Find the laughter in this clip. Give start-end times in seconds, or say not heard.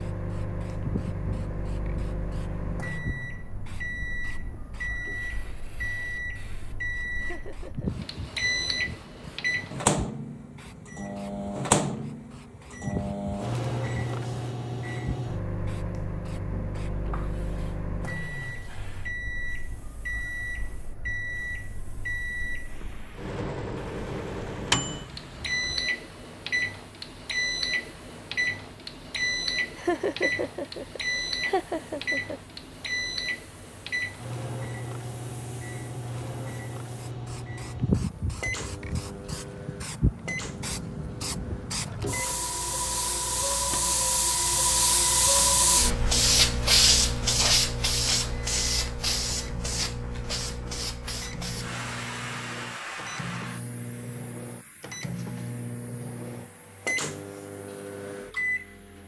7.2-8.1, 29.8-32.4.